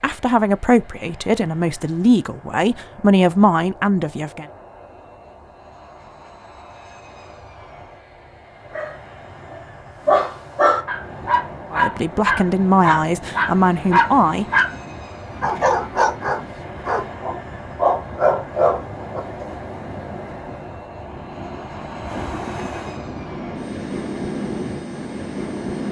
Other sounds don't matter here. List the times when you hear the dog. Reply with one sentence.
You can hear the dog from 8.7 to 14.7 s and from 15.4 to 19.5 s.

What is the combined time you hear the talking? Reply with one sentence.
You can hear the talking for 7 seconds altogether.